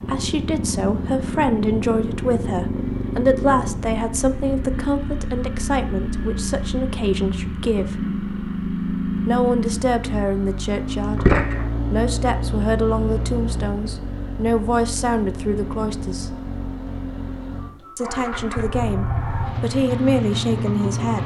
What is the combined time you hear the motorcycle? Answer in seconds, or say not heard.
21 s.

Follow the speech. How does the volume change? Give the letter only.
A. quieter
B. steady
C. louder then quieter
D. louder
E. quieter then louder
B.